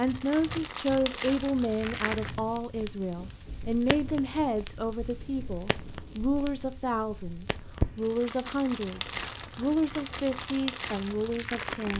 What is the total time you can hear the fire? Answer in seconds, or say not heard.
12 s.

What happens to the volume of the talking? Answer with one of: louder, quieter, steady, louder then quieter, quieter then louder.
steady.